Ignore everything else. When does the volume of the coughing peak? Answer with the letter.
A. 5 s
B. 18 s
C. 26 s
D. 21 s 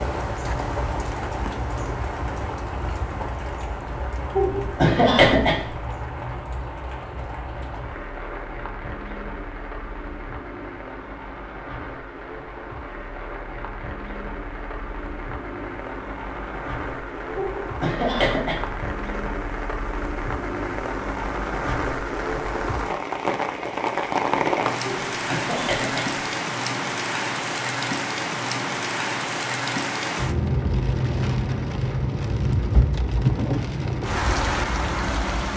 A.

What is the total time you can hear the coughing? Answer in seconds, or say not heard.
4 s.